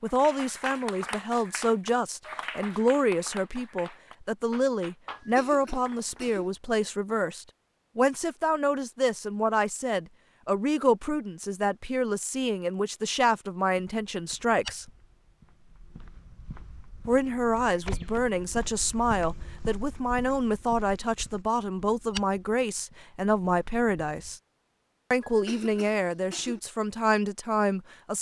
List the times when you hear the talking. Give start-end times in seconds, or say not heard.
0.0-14.9, 17.1-24.4, 25.1-28.1.